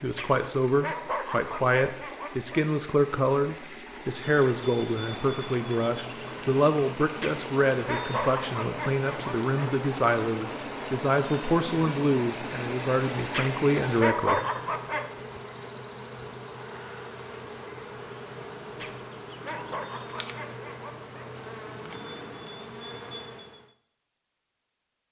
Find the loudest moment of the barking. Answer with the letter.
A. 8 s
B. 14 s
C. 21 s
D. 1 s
B.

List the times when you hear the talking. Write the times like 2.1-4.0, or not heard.
0.0-14.4.